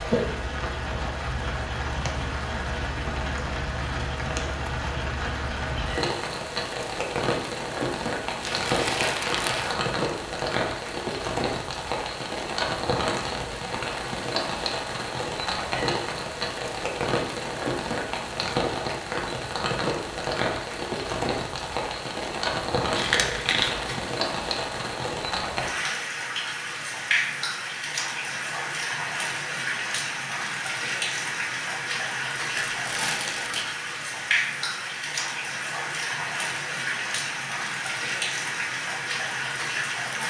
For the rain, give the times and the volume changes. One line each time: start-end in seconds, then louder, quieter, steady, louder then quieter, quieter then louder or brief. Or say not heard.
0.0-40.2 steady.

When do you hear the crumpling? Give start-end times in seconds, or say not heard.
8.4-9.8, 22.9-24.0, 32.5-33.6.